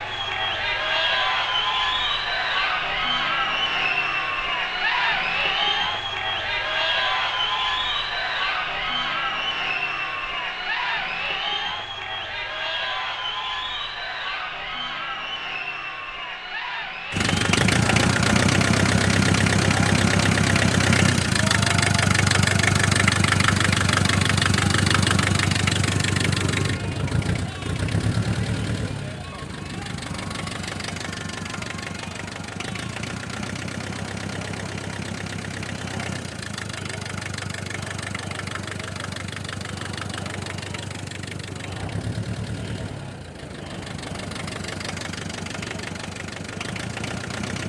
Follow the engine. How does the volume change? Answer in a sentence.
The loudness of the engine goes down.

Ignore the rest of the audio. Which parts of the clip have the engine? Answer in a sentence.
You can hear the engine from 17.1 to 47.6 s.